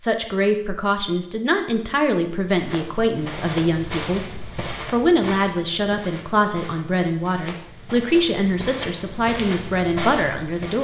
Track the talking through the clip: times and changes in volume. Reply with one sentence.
The talking can be heard from 0.0 to 10.7 s, at a steady volume.